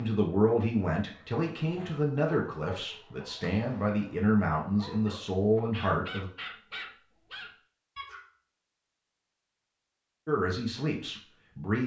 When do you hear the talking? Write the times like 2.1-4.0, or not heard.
0.0-6.3, 10.2-11.8.